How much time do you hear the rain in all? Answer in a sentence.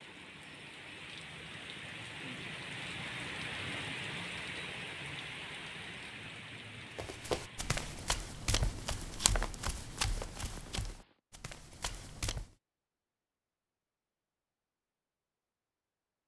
You can hear the rain for 11 seconds altogether.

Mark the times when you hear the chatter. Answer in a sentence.
The chatter can't be heard in this clip.